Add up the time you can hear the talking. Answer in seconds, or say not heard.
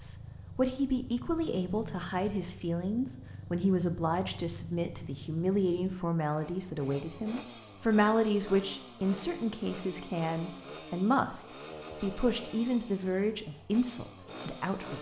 15 s.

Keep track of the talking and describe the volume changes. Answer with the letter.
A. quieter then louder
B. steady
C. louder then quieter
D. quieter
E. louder
B.